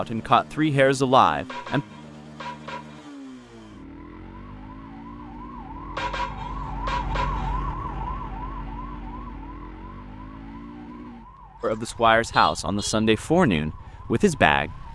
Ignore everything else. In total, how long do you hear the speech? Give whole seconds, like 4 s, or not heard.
5 s.